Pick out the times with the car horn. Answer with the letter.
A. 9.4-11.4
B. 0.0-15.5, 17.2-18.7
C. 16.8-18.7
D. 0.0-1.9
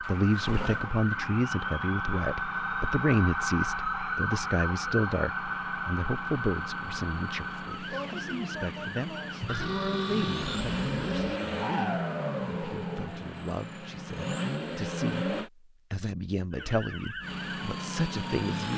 A.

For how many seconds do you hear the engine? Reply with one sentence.
You can hear the engine for 17 seconds altogether.